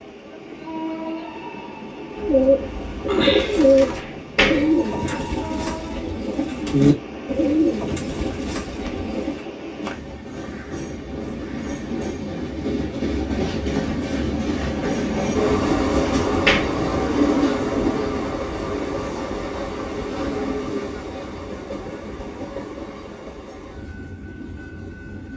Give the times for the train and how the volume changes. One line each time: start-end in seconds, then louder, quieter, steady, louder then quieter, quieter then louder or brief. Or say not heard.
0.0-25.3 louder then quieter.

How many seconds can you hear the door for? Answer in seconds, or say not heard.
2 s.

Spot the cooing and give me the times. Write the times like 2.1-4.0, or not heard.
2.1-9.4.